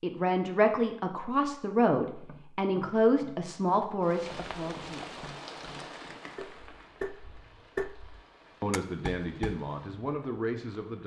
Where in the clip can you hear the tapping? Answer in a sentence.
You can hear the tapping from 2.1 to 9.7 s.